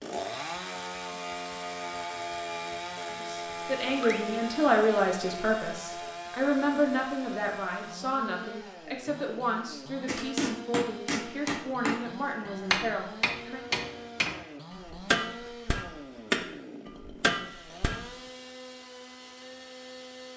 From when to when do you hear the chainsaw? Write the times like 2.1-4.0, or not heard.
0.0-20.3.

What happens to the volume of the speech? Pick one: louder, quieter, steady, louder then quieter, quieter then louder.
quieter.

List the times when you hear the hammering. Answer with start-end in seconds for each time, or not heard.
10.1-18.1.